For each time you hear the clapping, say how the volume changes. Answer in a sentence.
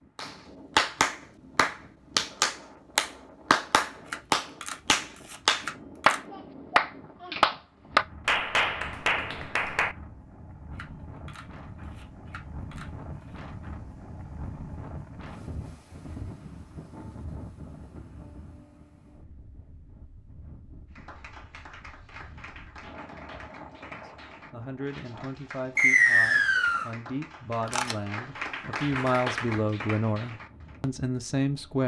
You can hear the clapping from 0.1 to 9.9 s, at a steady volume; and from 20.9 to 30.8 s, getting louder.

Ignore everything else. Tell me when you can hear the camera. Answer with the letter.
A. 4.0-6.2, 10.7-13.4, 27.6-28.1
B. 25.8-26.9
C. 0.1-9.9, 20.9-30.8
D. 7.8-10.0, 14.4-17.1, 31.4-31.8
A.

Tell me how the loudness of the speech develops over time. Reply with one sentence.
The loudness of the speech goes up.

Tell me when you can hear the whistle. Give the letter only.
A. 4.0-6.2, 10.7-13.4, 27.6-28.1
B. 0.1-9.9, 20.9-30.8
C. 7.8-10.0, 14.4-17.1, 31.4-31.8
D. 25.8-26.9
D.